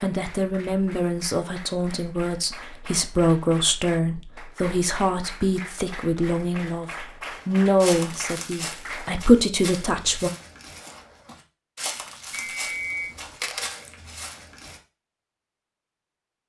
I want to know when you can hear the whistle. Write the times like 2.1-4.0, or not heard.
12.4-13.2.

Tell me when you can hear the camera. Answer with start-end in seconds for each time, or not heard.
12.8-13.8.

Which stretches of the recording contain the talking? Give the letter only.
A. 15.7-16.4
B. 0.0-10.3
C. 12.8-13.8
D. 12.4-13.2
B.